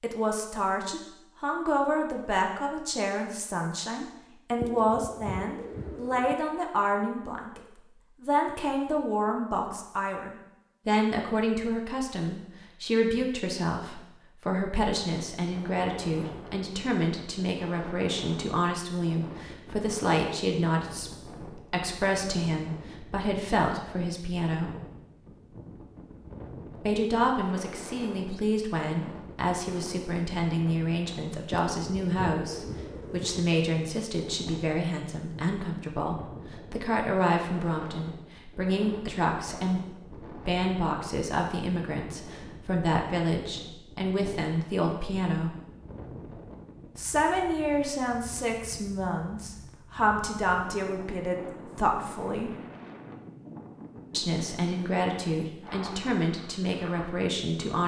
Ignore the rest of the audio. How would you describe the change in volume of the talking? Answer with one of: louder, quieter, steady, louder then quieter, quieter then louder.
steady.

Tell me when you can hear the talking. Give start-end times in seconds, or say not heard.
0.0-7.6, 8.2-24.8, 26.8-45.5, 47.0-52.5, 54.1-57.8.